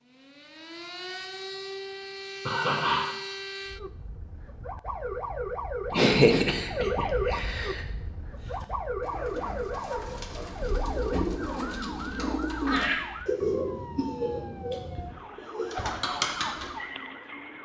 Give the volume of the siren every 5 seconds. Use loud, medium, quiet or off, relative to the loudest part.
medium, loud, medium, medium.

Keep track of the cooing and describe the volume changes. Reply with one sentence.
The loudness of the cooing goes up.